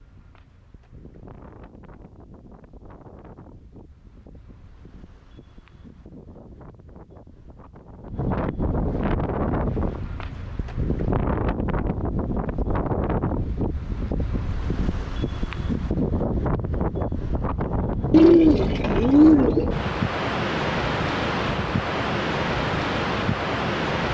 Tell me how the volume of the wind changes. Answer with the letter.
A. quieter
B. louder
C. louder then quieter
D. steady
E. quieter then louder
B.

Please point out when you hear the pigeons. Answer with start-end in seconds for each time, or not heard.
18.1-19.8.